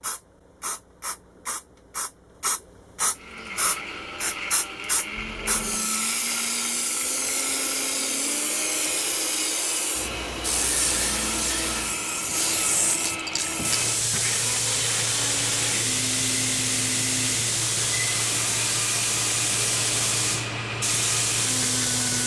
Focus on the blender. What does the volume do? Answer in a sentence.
The volume of the blender stays about the same.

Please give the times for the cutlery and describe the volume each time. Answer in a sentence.
The cutlery can't be heard in this clip.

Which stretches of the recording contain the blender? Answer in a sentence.
You can hear the blender from 3.1 to 22.2 s.